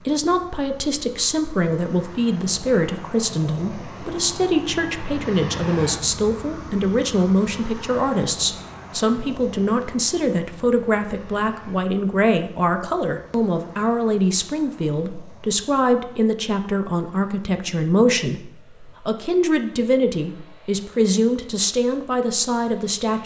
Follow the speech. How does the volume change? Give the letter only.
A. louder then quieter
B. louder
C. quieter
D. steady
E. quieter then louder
D.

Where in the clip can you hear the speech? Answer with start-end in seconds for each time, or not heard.
0.1-23.2.